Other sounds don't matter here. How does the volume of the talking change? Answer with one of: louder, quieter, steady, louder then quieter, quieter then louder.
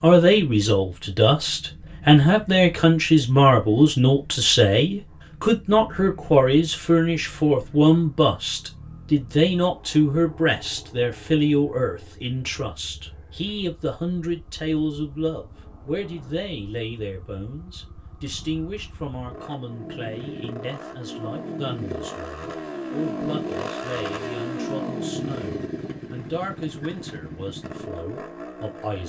quieter.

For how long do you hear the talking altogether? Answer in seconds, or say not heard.
29 s.